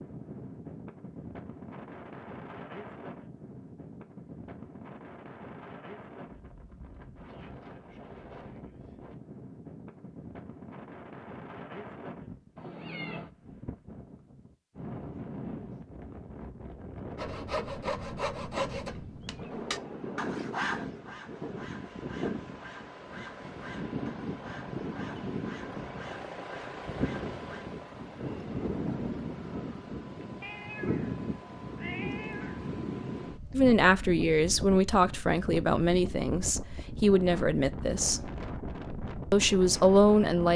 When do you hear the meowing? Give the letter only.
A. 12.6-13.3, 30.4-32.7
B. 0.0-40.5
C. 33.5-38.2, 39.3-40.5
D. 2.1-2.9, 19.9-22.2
A.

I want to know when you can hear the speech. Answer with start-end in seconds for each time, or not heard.
33.5-38.2, 39.3-40.5.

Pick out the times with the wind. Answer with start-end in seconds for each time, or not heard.
0.0-40.5.